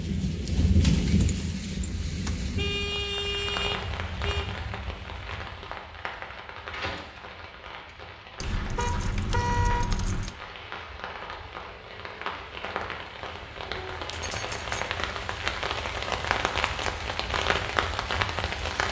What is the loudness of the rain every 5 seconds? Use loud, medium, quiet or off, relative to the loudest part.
loud, medium, medium, loud.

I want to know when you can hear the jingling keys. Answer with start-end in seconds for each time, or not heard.
0.8-2.5, 8.4-10.3, 14.1-14.9.